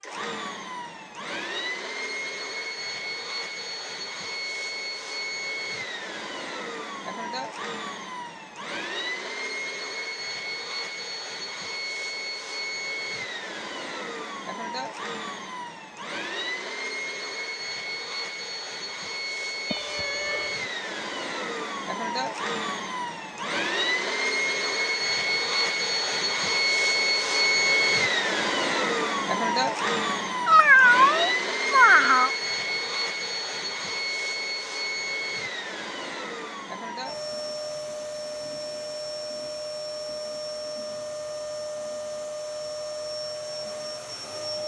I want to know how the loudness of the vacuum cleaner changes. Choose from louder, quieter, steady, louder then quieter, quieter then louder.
louder then quieter.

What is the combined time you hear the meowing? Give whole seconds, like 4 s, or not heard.
3 s.